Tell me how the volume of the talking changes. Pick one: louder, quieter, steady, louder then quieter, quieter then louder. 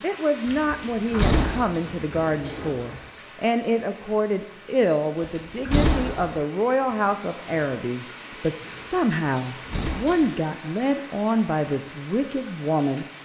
steady.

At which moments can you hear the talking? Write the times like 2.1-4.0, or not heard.
0.0-13.1.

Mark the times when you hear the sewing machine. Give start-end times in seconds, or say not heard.
not heard.